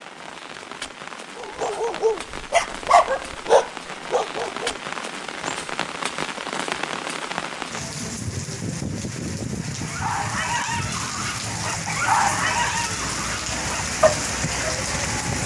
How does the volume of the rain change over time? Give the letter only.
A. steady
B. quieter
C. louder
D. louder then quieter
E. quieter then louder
C.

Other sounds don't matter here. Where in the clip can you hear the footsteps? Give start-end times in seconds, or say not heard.
not heard.